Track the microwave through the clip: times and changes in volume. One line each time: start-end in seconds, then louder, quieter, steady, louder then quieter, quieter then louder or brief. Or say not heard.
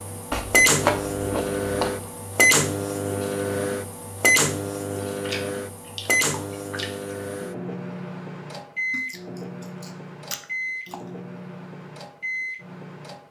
0.0-13.2 quieter.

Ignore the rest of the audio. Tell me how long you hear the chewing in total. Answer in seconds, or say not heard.
6 s.